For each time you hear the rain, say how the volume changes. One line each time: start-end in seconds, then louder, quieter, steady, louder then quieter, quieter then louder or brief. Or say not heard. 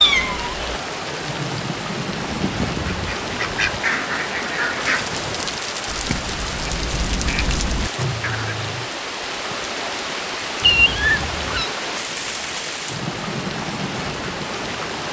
0.0-15.0 steady.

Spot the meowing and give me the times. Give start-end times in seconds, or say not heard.
0.0-0.7, 10.6-11.7.